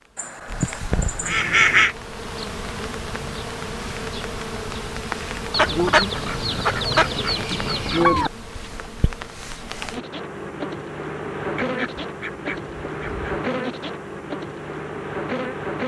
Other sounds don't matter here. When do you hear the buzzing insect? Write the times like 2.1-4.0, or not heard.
0.5-15.8.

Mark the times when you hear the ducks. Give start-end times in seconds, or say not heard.
0.1-1.9, 5.5-8.3, 11.6-13.4.